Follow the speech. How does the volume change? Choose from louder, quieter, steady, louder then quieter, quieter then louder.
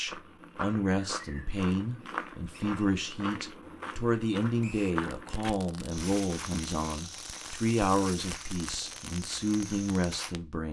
steady.